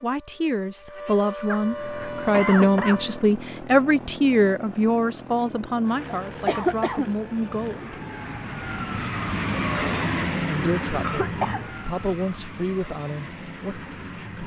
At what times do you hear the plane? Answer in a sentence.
The plane can be heard from 1.6 to 14.4 s.